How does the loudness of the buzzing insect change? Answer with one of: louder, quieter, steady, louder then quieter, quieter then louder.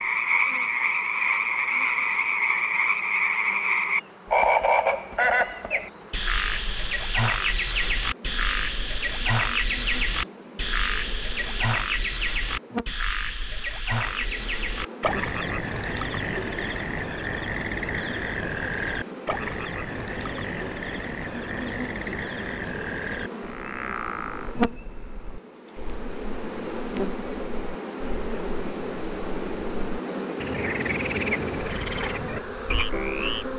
louder.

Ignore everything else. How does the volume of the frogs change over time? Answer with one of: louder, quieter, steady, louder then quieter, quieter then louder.
quieter.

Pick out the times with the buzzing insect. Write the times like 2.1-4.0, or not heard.
0.0-33.5.